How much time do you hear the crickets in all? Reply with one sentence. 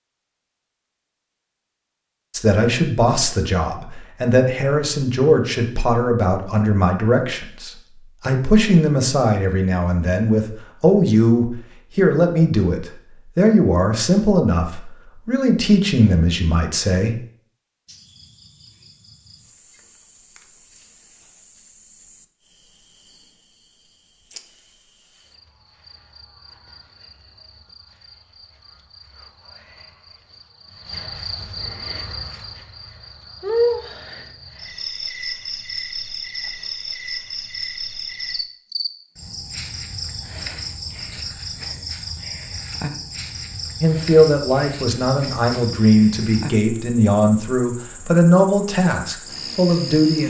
You can hear the crickets for 32 seconds altogether.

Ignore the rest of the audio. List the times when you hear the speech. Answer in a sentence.
You can hear the speech from 2.3 to 17.1 s and from 43.8 to 50.2 s.